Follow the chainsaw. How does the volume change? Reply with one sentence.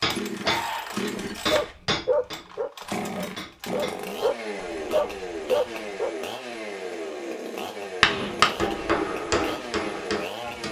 The volume of the chainsaw stays about the same.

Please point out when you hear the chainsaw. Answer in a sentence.
You can hear the chainsaw from 0.0 to 10.6 s.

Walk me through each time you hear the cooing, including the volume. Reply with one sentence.
You can't hear the cooing here.